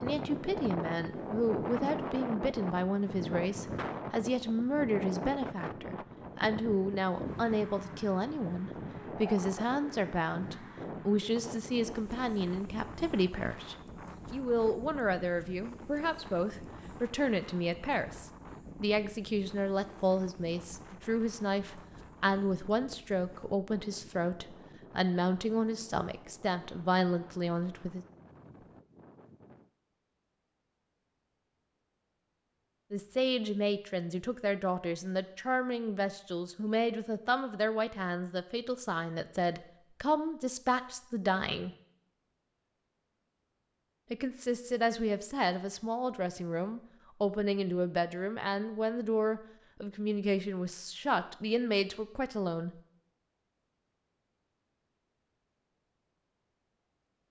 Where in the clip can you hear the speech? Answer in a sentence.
The speech can be heard from 0.0 to 28.1 s, from 32.9 to 41.7 s and from 44.1 to 52.7 s.